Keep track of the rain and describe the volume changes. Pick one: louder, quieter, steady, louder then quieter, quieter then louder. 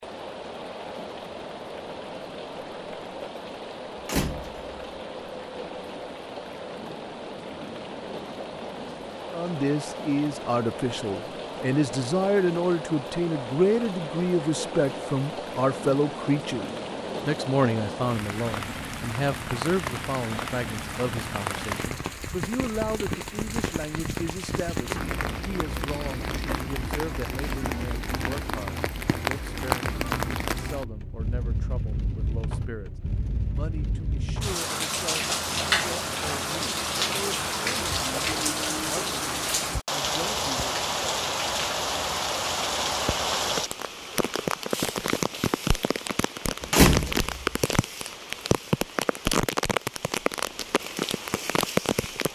louder.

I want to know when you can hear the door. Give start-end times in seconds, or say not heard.
4.0-4.8, 46.7-47.5.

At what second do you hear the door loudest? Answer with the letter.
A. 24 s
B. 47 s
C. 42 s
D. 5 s
B.